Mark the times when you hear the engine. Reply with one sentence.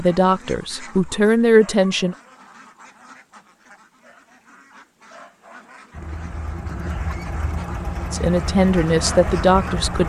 The engine can be heard from 5.9 to 10.0 s.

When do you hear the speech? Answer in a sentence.
The speech can be heard from 0.0 to 2.1 s and from 8.1 to 10.0 s.